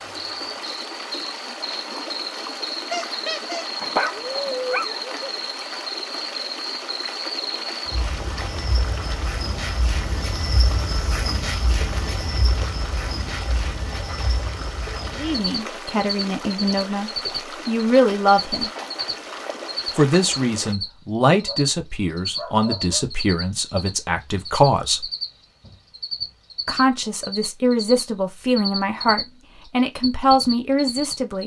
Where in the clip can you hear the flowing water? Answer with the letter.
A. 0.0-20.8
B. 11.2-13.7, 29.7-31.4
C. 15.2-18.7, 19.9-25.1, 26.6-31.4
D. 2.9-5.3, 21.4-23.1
A.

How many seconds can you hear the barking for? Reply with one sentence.
The barking can be heard for 4 seconds in total.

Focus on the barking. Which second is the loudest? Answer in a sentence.
The loudest moment of the barking is at 4 seconds.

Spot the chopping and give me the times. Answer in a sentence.
The chopping can't be heard in this clip.